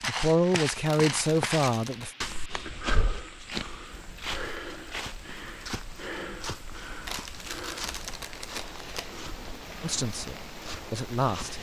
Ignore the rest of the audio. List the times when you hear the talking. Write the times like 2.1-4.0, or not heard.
0.1-2.1, 9.8-11.5.